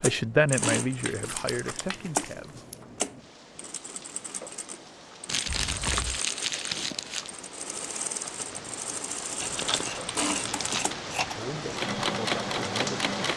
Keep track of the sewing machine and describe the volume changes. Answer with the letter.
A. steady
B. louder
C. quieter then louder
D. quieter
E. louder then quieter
C.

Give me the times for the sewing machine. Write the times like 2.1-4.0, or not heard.
0.0-13.3.